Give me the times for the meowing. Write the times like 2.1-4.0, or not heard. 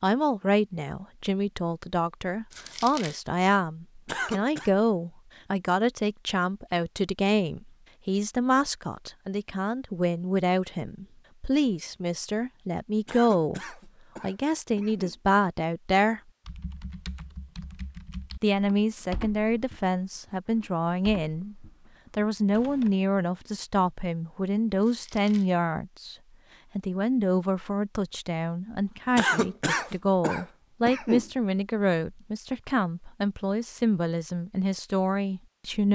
not heard.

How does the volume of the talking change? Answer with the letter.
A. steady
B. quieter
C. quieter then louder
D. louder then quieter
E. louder
A.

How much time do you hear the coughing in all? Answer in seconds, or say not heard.
5 s.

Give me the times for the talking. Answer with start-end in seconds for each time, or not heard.
0.0-16.2, 18.4-26.1, 26.8-35.8.